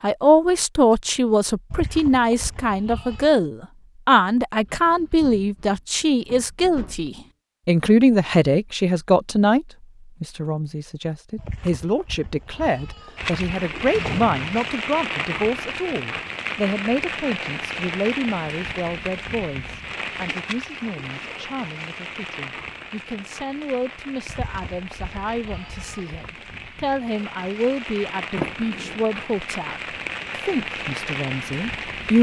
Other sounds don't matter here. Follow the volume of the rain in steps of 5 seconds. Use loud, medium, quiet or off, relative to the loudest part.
off, off, loud, loud, medium, medium, loud.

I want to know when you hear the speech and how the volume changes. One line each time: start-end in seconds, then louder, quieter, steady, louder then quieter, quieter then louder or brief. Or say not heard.
0.0-29.8 quieter
30.4-32.1 brief.